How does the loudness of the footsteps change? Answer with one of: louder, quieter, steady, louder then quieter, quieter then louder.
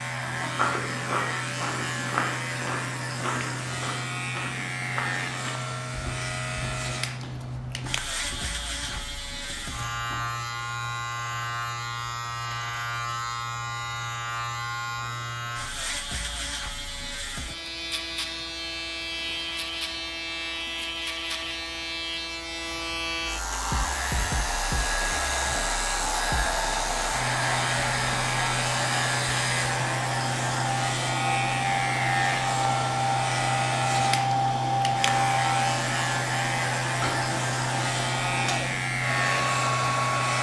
quieter.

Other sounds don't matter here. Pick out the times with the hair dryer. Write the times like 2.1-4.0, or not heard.
23.3-40.3.